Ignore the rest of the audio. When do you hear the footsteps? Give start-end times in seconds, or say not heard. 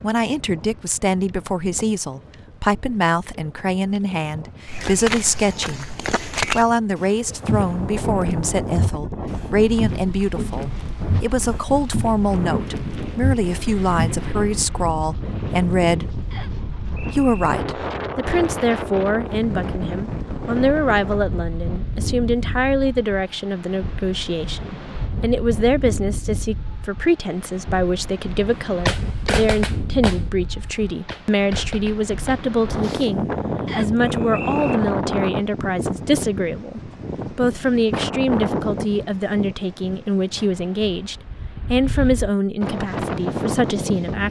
4.7-14.2.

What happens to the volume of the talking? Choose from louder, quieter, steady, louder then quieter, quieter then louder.
steady.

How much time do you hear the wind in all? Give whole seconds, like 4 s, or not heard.
44 s.